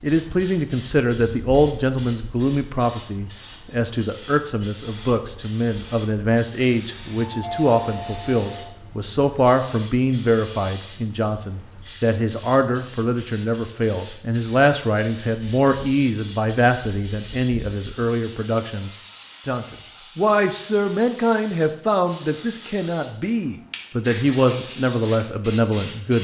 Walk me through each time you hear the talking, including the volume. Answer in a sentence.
The talking can be heard from 0.0 to 26.2 s, at a steady volume.